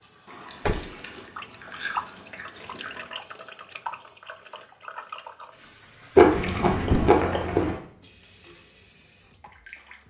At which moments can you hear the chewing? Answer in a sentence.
The chewing can be heard from 0.2 to 3.0 s and from 6.2 to 7.8 s.